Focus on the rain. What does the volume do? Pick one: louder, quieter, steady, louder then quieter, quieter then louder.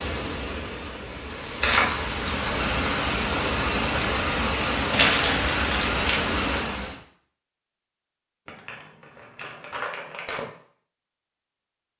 louder.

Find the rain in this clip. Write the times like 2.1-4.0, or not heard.
0.0-7.0.